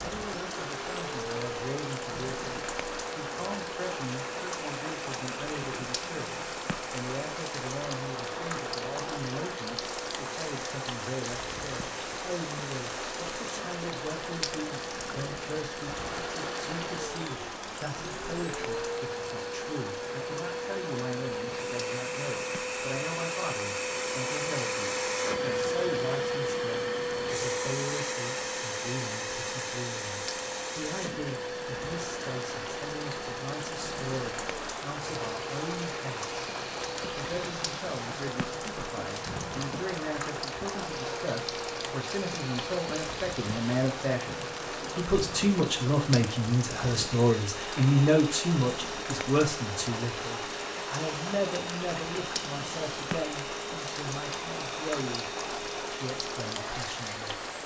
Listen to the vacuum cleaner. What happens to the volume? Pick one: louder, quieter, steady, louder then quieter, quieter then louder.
louder then quieter.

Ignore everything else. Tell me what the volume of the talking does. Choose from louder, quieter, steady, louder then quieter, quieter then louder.
louder.